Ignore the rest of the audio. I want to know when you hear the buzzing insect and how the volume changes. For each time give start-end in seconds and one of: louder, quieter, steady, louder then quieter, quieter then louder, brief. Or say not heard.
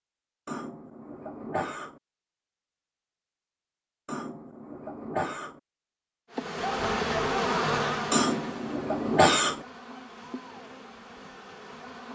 6.3-12.0 quieter.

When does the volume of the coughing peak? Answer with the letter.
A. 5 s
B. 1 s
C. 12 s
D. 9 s
D.